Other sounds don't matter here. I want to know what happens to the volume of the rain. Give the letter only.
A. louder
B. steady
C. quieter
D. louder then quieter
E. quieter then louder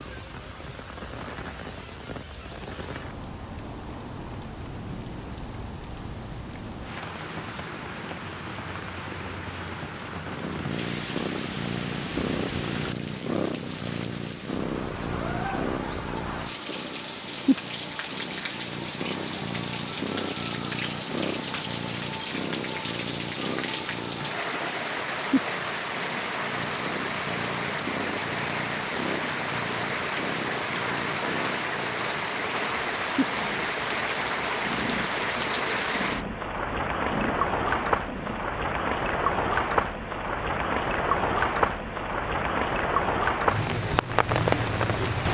A.